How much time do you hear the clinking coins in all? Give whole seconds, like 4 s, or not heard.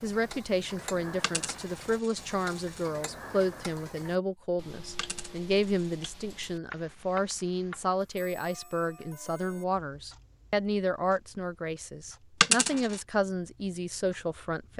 3 s.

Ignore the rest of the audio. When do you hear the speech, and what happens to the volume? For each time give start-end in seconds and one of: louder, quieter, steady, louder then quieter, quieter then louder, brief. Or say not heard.
0.0-14.7 steady.